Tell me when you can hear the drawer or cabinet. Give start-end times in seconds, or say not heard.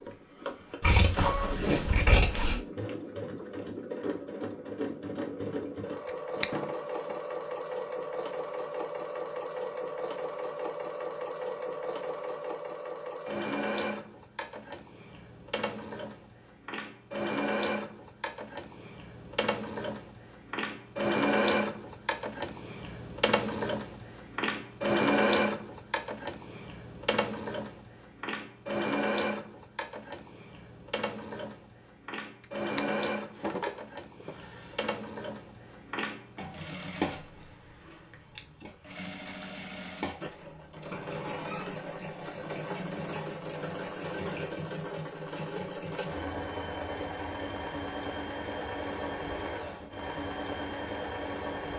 6.0-7.2, 32.4-35.0.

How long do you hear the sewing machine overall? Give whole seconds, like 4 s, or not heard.
52 s.